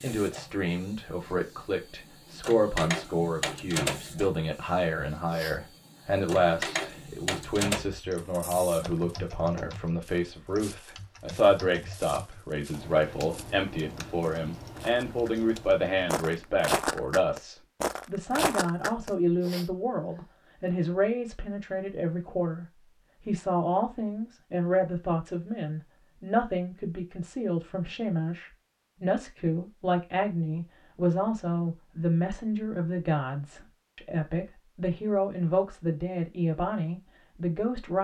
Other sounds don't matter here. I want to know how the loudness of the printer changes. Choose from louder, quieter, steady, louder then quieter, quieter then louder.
louder.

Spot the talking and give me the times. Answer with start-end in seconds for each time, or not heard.
0.0-37.9.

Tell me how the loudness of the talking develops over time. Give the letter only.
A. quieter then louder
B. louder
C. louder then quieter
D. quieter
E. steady
E.